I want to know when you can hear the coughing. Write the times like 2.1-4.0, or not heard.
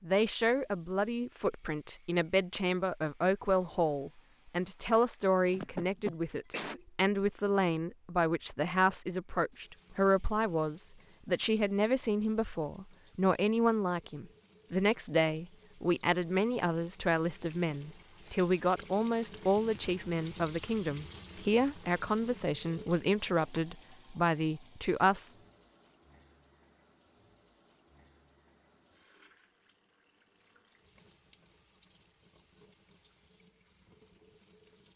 5.5-6.8.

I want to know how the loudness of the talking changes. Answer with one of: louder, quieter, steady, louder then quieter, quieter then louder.
steady.